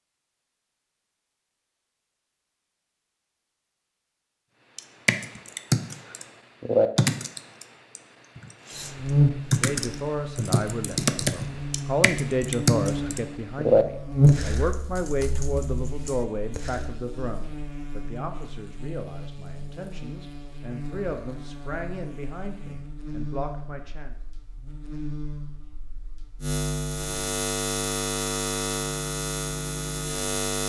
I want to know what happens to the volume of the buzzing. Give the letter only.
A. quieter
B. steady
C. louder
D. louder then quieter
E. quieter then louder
E.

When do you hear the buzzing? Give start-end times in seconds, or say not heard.
8.8-30.6.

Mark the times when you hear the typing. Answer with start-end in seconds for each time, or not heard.
4.8-16.9.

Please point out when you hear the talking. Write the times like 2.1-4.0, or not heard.
9.5-24.1.